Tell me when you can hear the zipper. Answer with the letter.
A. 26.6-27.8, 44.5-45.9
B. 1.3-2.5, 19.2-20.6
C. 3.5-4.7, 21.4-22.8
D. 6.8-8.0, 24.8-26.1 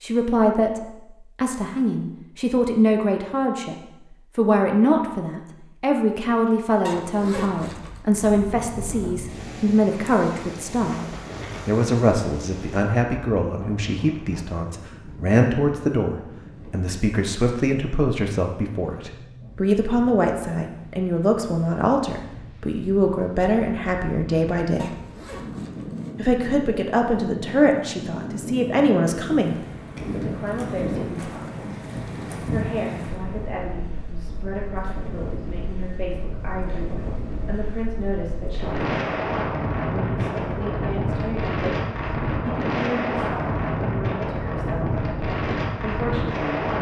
D.